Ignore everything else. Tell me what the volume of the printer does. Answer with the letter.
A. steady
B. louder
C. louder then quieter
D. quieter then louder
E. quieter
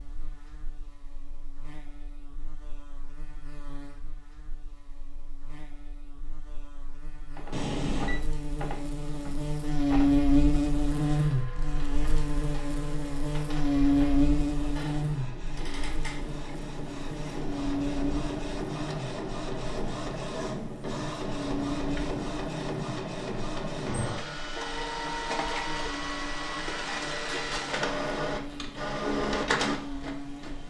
B.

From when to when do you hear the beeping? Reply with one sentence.
You can hear the beeping from 7.5 to 8.2 s.